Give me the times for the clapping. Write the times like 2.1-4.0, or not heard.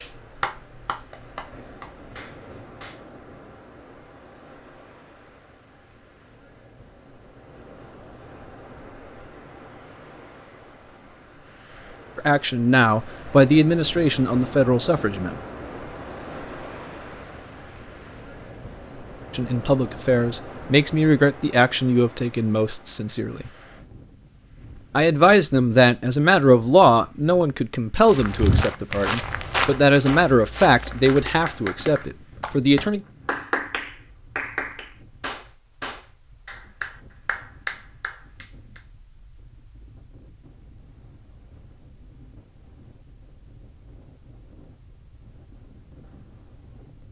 0.0-3.0, 30.6-38.8.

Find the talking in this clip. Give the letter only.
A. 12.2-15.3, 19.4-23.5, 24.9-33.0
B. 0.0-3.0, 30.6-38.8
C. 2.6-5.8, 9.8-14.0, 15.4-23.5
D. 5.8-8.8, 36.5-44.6
A.